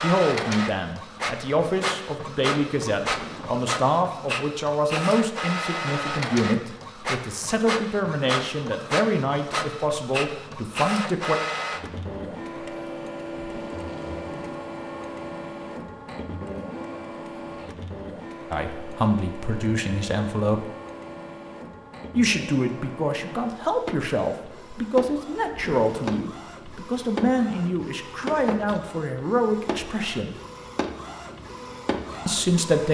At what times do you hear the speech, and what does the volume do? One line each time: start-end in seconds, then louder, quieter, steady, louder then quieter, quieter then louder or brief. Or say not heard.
0.0-11.4 steady
18.5-20.6 brief
22.1-30.4 steady
32.2-32.8 brief.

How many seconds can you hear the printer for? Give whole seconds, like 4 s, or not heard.
33 s.